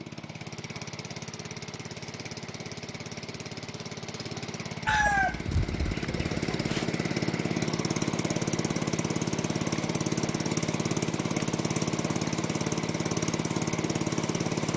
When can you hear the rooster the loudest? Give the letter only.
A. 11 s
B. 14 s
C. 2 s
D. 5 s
D.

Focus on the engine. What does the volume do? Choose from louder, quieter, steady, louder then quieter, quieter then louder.
louder.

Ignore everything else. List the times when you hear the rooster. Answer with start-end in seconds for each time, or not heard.
4.8-6.8.